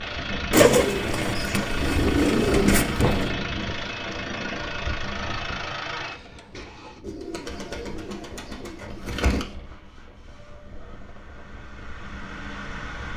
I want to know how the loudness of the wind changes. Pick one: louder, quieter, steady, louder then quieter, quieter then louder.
quieter.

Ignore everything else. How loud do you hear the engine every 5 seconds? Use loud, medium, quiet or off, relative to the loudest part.
loud, loud, medium.